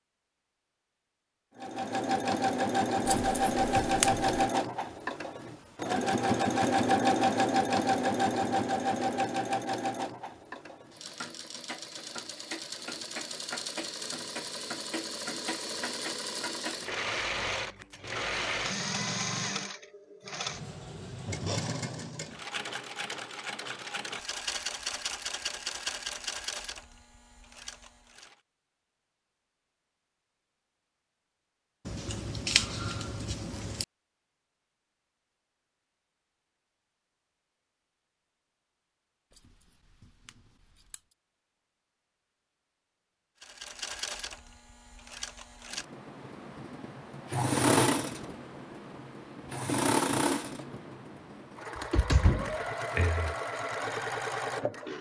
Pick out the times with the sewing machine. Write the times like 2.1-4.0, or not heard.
1.6-28.4, 43.4-54.9.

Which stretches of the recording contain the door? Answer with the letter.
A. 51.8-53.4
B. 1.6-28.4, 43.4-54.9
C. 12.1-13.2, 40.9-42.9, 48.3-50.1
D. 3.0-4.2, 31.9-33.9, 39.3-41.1
A.